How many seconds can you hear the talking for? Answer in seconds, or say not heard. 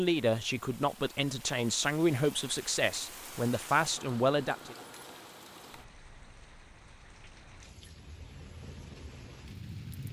5 s.